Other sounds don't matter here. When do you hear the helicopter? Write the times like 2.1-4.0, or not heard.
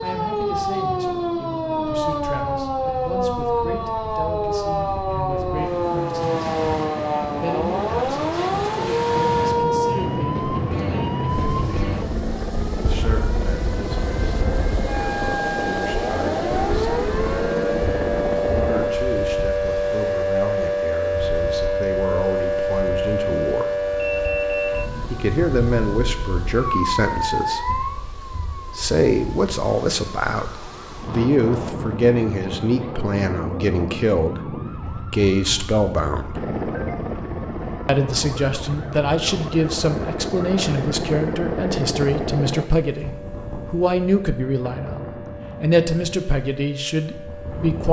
5.2-18.9, 36.3-42.6.